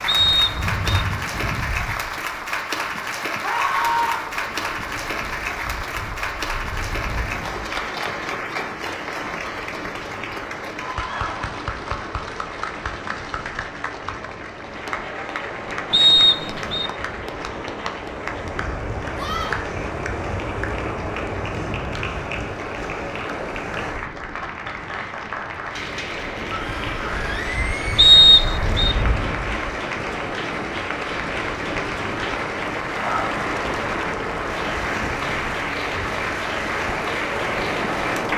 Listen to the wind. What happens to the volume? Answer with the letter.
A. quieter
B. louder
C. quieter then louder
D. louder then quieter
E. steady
B.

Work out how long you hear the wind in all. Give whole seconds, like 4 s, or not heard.
38 s.